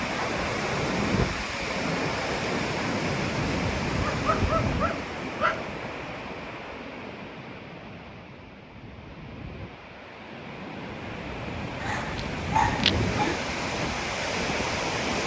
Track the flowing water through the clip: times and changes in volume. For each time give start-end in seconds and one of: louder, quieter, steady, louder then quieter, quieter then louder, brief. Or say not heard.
0.0-15.2 quieter then louder.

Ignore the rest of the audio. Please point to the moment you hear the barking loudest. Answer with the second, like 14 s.
13 s.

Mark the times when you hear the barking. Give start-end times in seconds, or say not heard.
4.1-5.7, 11.8-13.4.